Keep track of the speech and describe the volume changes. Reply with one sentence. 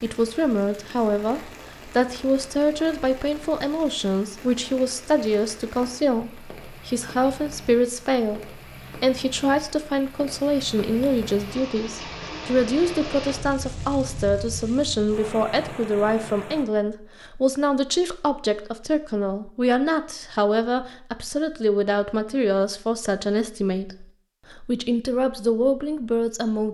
The loudness of the speech stays about the same.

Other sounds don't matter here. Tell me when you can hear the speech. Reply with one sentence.
You can hear the speech from 0.0 to 26.7 s.